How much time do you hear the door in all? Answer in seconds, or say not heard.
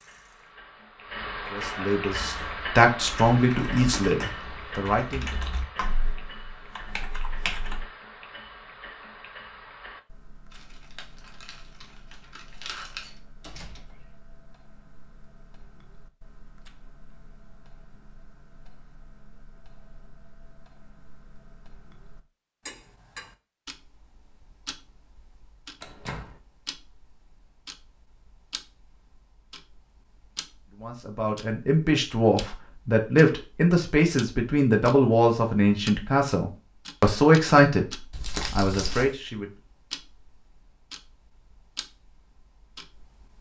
2 s.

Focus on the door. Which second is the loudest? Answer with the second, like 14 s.
26 s.